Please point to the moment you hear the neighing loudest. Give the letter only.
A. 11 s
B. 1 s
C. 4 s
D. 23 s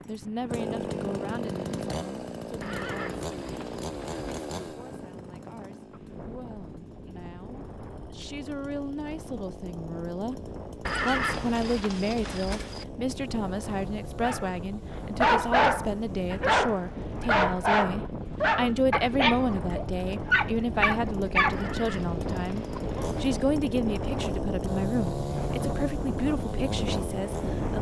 A.